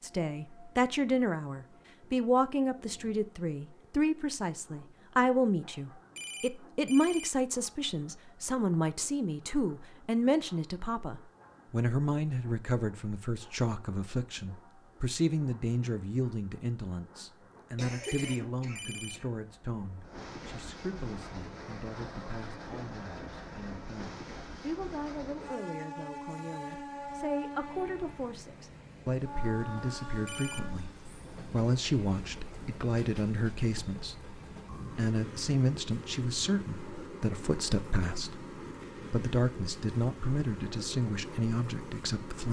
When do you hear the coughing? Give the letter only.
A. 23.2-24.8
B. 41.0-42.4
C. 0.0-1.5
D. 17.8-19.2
D.